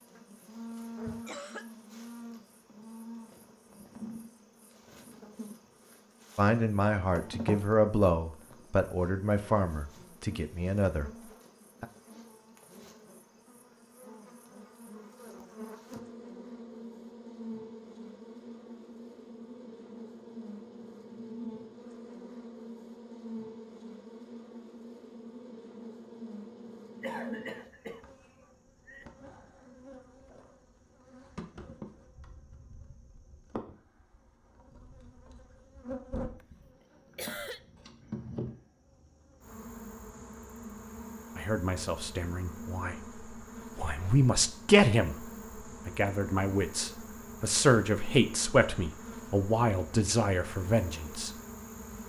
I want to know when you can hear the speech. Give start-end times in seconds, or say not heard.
6.3-11.1, 41.4-51.3.